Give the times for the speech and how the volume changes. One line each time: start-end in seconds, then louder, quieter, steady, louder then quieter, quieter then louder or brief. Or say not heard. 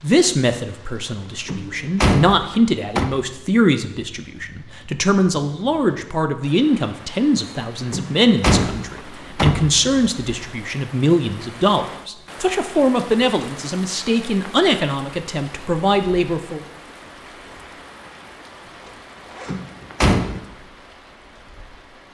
0.0-16.6 steady.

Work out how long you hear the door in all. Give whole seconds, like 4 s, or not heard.
5 s.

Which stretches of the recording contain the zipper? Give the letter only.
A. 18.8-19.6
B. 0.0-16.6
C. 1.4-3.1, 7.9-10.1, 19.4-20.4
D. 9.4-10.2
A.